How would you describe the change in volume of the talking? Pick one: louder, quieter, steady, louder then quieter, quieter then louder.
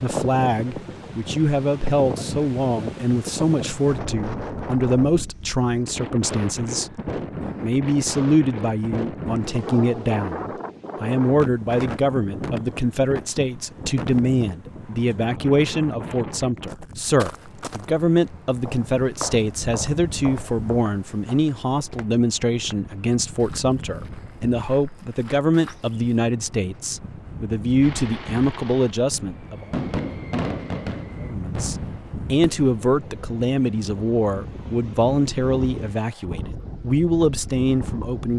steady.